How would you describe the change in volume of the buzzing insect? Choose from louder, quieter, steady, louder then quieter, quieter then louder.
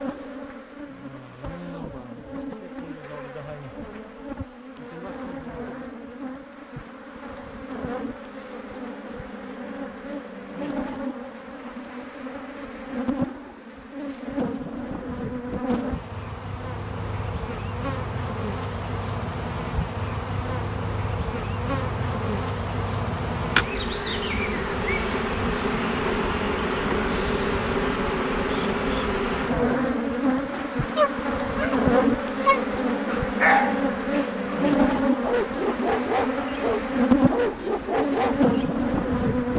louder.